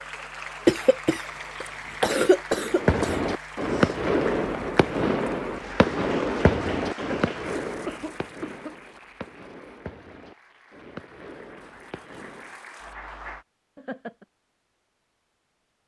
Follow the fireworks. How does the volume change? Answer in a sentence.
The volume of the fireworks goes down.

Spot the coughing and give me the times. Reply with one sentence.
You can hear the coughing from 0.7 to 3.2 s, from 7.0 to 8.8 s and from 13.8 to 14.2 s.